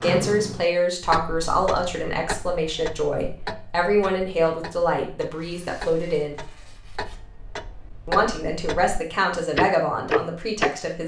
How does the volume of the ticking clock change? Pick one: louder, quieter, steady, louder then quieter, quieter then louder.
quieter then louder.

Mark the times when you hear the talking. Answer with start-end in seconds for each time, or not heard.
0.0-6.4, 8.1-11.0.